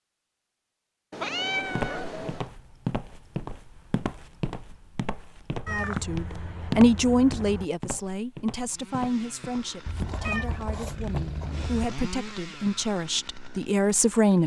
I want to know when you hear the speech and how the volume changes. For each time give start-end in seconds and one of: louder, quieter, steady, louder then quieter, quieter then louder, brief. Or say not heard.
5.7-14.4 quieter then louder.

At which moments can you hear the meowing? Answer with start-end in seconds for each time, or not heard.
1.1-2.5, 5.7-7.7, 9.8-11.9.